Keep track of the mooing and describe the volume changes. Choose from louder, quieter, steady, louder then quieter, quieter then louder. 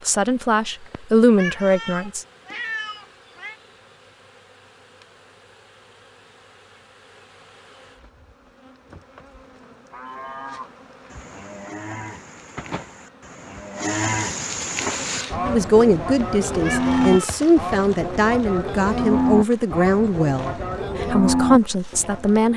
louder.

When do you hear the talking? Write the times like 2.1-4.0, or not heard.
0.1-2.2, 15.4-22.5.